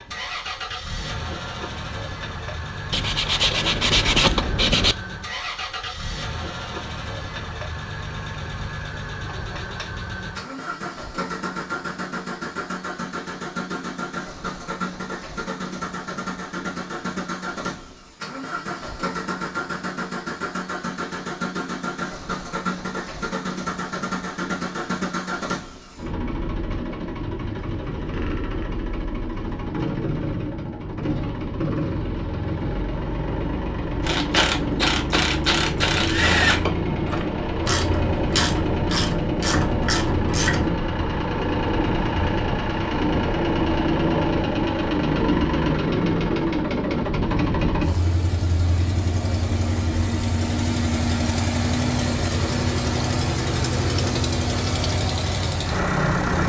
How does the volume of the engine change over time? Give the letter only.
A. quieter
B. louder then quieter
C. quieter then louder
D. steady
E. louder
E.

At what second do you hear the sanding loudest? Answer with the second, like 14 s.
4 s.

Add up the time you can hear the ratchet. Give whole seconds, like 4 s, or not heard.
7 s.